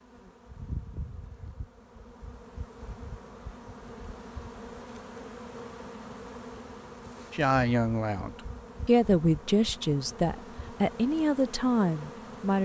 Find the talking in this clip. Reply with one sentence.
The talking can be heard from 7.3 to 12.6 s.